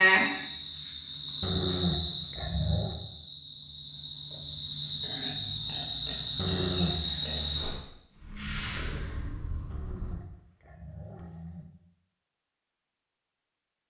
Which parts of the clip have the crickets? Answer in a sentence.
The crickets can be heard from 0.0 to 10.2 s.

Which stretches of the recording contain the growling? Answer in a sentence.
You can hear the growling from 1.4 to 3.0 s, from 6.3 to 7.0 s and from 9.7 to 11.7 s.